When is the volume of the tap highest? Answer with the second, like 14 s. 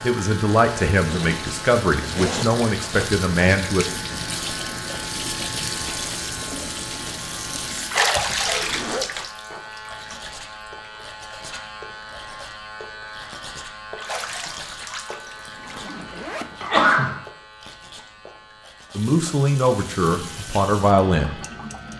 8 s.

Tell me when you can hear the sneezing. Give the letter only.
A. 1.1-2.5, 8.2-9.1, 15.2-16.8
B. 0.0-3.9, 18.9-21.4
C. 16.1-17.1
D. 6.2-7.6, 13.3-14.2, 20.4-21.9
C.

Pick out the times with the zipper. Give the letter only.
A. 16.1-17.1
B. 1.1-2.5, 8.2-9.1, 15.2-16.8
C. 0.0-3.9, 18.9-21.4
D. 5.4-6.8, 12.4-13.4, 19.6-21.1
B.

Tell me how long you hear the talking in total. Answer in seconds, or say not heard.
6 s.